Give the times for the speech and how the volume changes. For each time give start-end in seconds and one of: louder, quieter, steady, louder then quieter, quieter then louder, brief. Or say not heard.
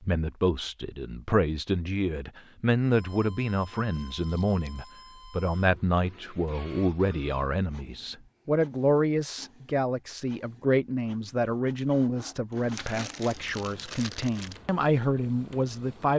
0.0-16.1 steady.